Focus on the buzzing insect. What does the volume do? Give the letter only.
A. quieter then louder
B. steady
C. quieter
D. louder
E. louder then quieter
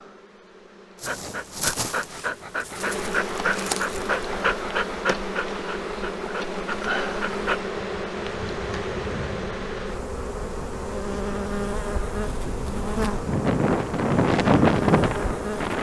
D.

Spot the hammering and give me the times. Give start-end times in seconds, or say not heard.
not heard.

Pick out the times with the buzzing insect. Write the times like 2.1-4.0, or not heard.
0.0-15.7.